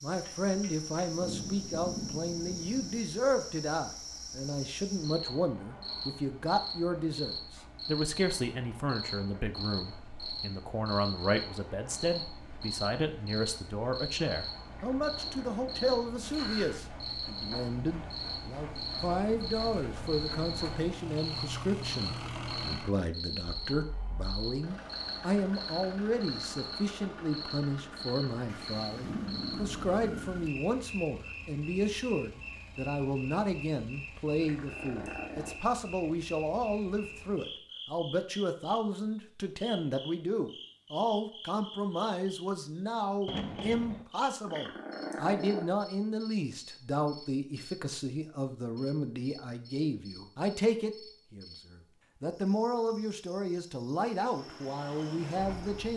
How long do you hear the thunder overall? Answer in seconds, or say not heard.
5 s.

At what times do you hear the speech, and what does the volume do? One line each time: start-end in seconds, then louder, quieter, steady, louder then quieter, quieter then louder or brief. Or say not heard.
0.0-55.9 steady.